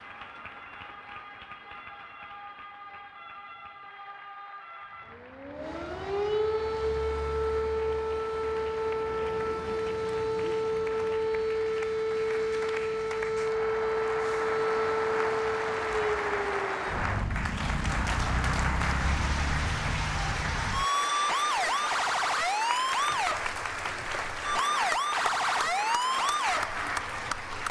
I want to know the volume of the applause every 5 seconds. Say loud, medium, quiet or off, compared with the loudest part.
quiet, quiet, medium, loud, loud, loud.